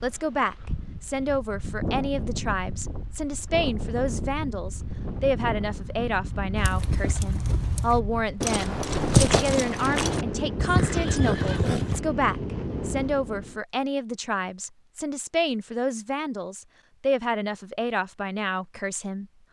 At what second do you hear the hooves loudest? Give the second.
9 s.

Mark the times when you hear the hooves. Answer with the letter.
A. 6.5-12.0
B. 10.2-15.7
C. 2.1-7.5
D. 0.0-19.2
A.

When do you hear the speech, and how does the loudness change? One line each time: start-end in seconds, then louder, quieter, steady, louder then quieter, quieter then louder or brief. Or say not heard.
0.0-19.2 steady.